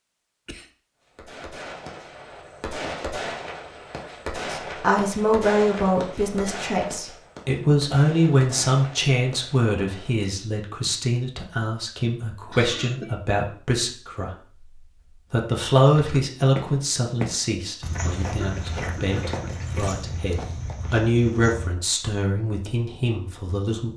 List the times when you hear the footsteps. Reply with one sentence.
The footsteps can be heard from 15.9 to 22.1 s.